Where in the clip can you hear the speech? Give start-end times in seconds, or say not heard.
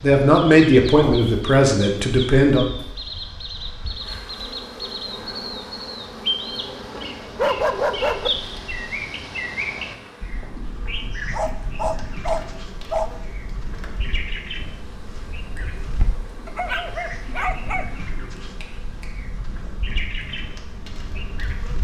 0.0-2.6.